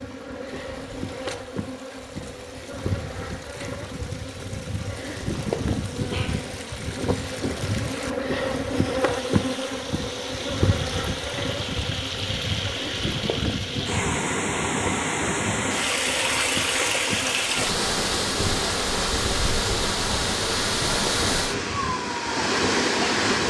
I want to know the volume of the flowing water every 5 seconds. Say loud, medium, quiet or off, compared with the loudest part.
quiet, quiet, medium, loud, loud.